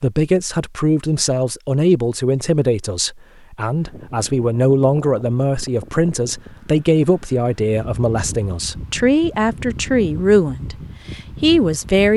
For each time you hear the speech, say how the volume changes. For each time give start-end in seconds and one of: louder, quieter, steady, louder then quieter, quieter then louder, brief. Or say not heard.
0.0-12.1 steady.